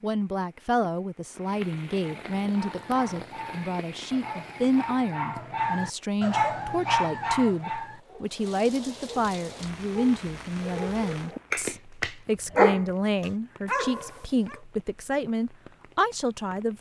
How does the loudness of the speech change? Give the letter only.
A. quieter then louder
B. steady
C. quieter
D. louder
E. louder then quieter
B.